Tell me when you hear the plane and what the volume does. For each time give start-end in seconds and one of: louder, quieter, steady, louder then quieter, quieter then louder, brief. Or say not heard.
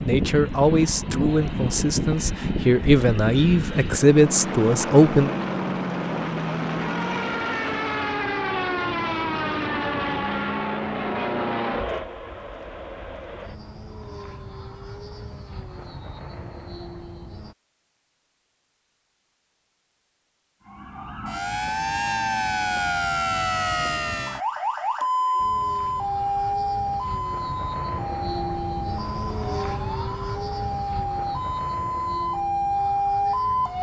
0.0-17.6 quieter
25.4-33.7 louder then quieter.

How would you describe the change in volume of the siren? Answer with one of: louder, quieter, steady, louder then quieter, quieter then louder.
quieter then louder.